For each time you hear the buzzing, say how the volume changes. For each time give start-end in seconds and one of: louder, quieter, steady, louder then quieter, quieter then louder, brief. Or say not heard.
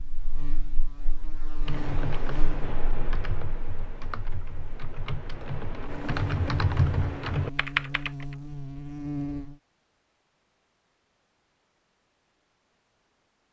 0.0-9.6 quieter then louder.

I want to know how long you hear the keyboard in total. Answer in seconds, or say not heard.
7 s.